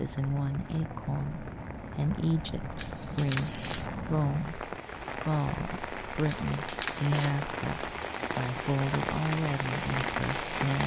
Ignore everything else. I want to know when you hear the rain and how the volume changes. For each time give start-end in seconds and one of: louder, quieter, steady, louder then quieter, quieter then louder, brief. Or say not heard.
0.0-10.8 louder.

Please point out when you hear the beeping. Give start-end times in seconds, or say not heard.
2.8-3.9, 6.2-7.3.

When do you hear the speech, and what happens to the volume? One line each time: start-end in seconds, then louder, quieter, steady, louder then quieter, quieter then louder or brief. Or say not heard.
0.0-10.8 steady.